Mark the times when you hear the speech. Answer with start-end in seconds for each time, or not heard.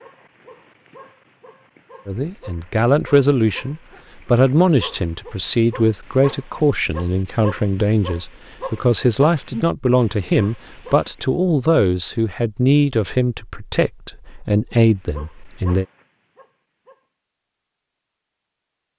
2.0-15.8.